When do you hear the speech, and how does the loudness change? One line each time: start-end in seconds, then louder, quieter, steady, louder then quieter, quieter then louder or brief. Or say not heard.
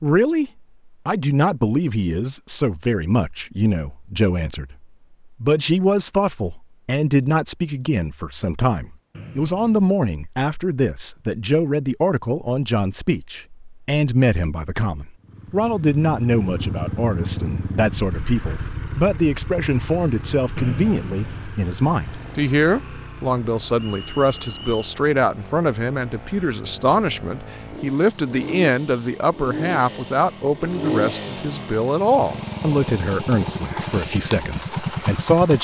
0.0-35.5 steady.